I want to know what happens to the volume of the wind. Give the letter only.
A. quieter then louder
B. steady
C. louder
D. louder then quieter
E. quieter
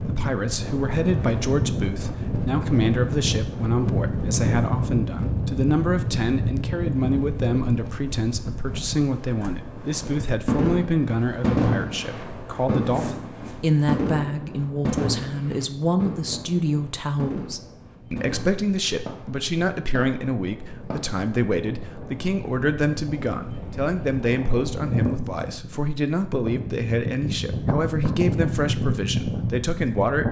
A.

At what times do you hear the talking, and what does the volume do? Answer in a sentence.
The talking can be heard from 0.0 to 30.2 s, at a steady volume.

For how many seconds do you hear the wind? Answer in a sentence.
The wind can be heard for 30 seconds in total.